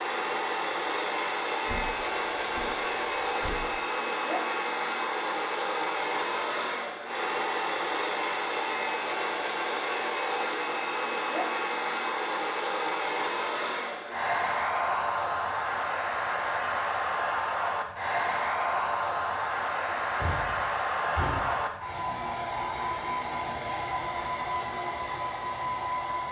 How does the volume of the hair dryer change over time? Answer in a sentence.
The volume of the hair dryer stays about the same.